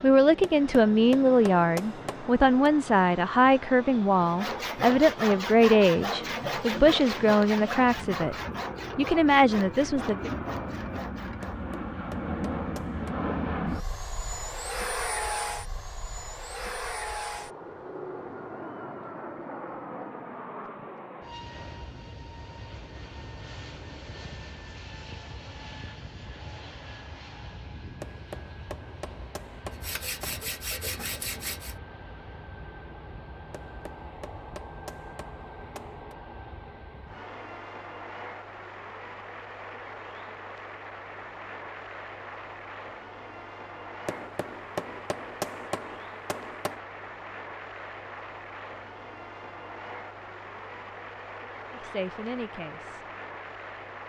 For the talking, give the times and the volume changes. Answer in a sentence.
You can hear the talking from 0.0 to 8.3 s, at a steady volume; briefly from 8.9 to 10.3 s; and briefly from 51.7 to 53.0 s.